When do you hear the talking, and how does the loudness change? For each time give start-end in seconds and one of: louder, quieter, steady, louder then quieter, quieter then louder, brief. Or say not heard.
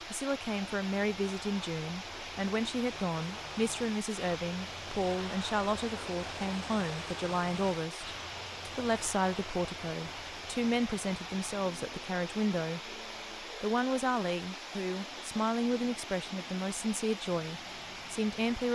0.1-18.7 steady.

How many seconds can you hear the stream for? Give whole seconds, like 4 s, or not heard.
19 s.